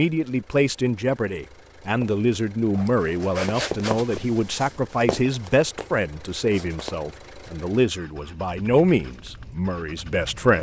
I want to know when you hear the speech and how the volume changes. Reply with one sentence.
The speech can be heard from 0.0 to 10.5 s, at a steady volume.